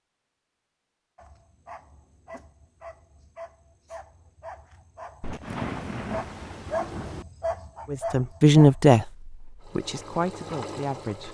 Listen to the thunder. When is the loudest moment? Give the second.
6 s.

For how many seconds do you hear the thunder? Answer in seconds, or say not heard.
2 s.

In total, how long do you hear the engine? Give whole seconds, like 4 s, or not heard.
2 s.